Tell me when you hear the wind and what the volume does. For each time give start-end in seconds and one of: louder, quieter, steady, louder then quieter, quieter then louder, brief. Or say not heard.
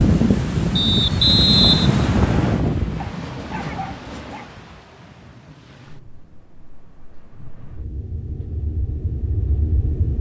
0.0-10.1 quieter then louder.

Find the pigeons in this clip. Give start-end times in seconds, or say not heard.
not heard.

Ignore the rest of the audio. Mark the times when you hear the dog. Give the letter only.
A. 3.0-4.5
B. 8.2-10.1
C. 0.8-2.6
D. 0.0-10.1
A.